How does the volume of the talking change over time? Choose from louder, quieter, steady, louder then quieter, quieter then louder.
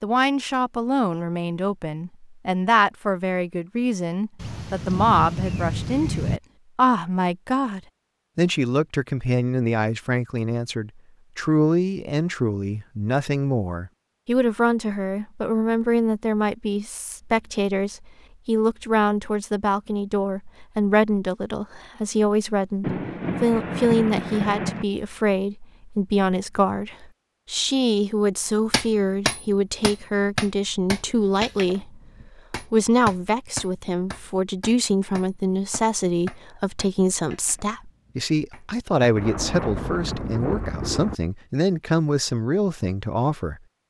steady.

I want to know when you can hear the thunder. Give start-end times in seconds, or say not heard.
4.3-6.4, 22.8-24.9, 39.1-41.1.